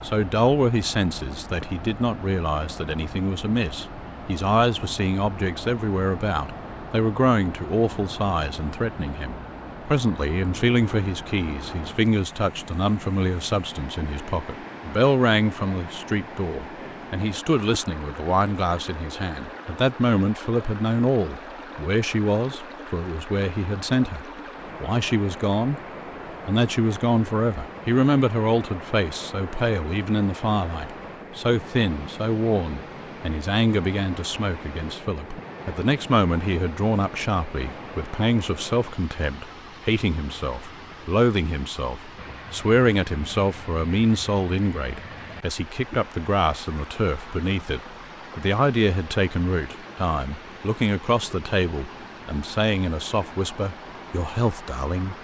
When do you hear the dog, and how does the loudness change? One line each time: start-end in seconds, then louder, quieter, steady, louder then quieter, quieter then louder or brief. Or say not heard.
not heard.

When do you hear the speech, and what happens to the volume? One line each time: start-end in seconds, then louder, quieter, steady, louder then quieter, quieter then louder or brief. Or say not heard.
0.0-25.8 steady
26.4-55.1 steady.